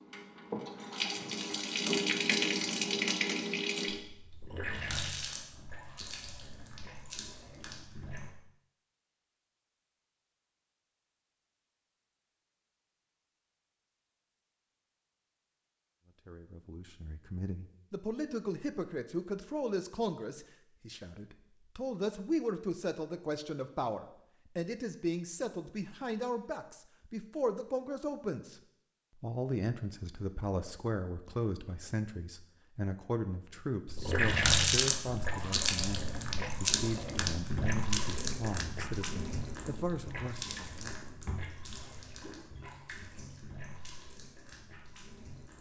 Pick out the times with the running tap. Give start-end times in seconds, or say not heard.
0.0-8.3, 33.9-45.5.